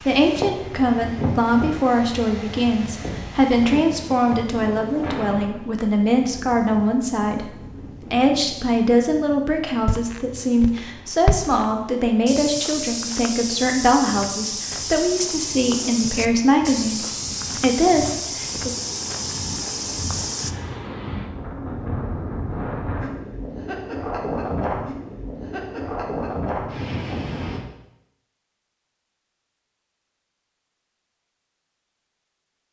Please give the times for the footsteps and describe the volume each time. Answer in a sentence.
The footsteps can be heard from 9.8 to 20.6 s, at a steady volume.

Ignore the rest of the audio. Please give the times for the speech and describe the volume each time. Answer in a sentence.
The speech can be heard from 0.1 to 18.8 s, at a steady volume.